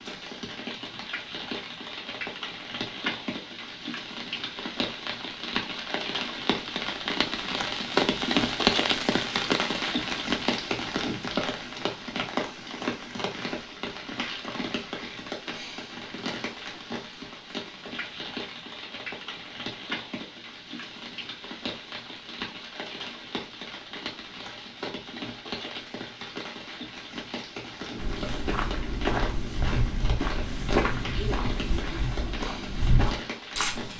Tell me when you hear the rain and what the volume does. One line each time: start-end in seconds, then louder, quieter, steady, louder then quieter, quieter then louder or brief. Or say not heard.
0.0-33.9 louder then quieter.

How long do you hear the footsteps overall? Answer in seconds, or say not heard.
6 s.